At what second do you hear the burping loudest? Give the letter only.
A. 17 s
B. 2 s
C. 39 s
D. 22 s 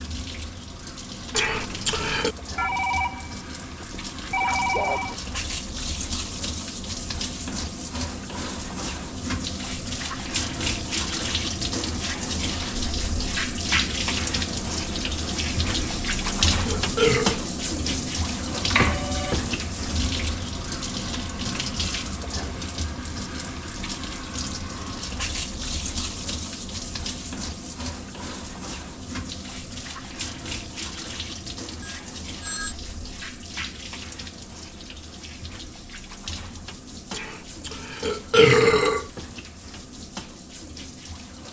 C.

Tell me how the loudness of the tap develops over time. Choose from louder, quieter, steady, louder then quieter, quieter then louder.
louder then quieter.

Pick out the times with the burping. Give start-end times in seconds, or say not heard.
1.3-2.4, 15.8-17.4, 37.1-39.0.